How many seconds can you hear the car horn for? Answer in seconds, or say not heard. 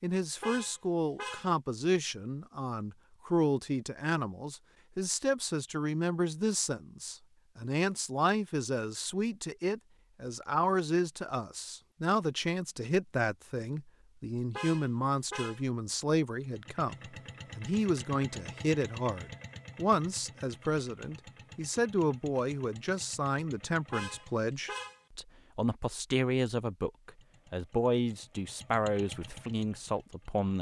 3 s.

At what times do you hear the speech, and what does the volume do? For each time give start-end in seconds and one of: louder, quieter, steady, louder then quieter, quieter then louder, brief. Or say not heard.
0.0-16.9 steady
17.6-30.5 steady.